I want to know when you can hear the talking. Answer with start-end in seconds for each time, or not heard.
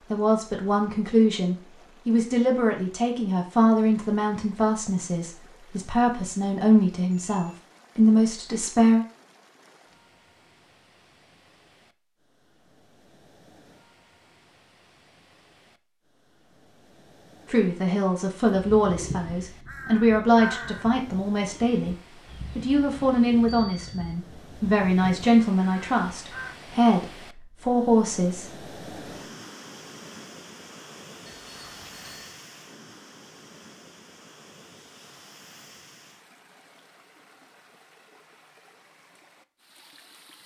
0.1-9.1, 17.4-21.9, 22.6-28.4.